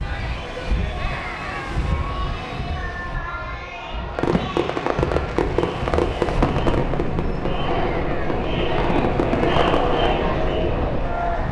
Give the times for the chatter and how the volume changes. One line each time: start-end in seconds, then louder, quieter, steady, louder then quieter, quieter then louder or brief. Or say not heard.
0.0-11.4 louder.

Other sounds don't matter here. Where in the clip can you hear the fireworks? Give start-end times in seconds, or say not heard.
4.2-10.0.